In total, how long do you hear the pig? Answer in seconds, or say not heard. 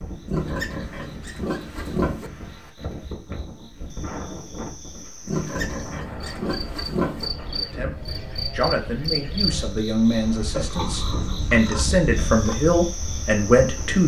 6 s.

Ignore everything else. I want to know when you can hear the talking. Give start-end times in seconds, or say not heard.
7.5-14.0.